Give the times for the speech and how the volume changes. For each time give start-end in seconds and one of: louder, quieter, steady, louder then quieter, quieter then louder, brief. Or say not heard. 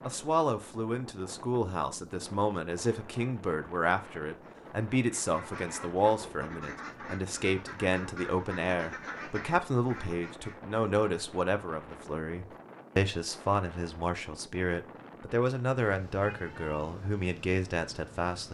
0.1-18.5 steady.